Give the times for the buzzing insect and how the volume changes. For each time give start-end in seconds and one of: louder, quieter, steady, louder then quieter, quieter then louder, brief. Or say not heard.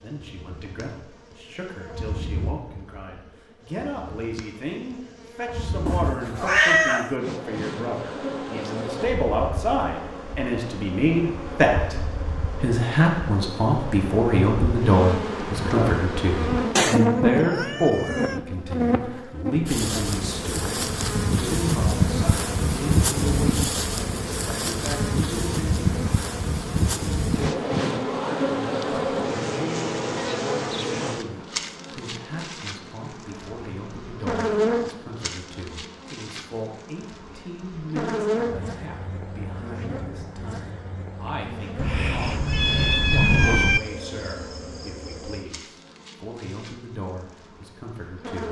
0.0-48.4 louder then quieter.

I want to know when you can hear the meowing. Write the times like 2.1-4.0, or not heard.
5.8-7.2, 16.8-18.4, 41.8-43.8.